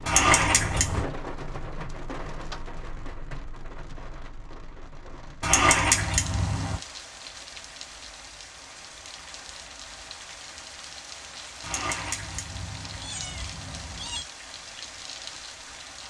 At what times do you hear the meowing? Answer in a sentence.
The meowing can be heard from 0.1 to 1.1 s, from 5.4 to 6.8 s and from 11.6 to 14.2 s.